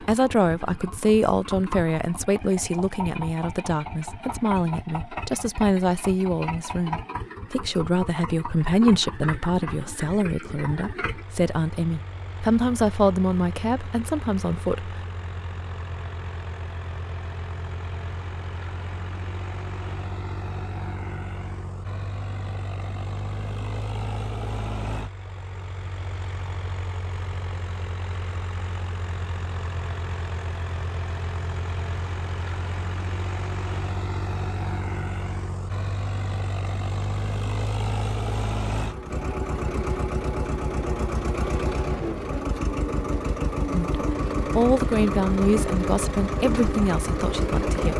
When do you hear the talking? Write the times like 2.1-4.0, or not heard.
0.0-15.0, 43.7-47.9.